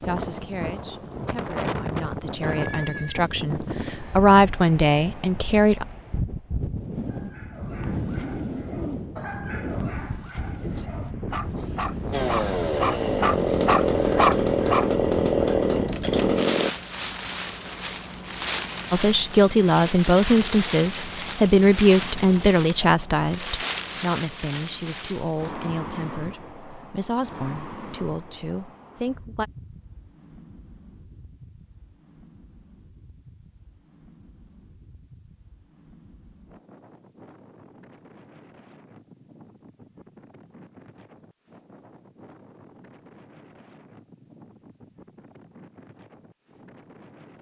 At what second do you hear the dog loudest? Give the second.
14 s.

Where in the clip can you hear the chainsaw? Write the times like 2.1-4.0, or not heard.
12.1-16.7.